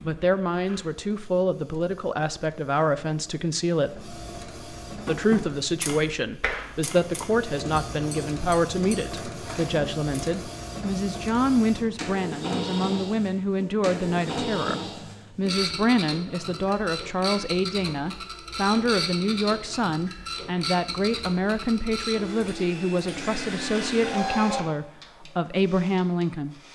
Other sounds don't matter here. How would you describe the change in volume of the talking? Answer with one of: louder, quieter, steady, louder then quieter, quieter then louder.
steady.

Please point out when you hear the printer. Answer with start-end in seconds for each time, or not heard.
0.0-26.6.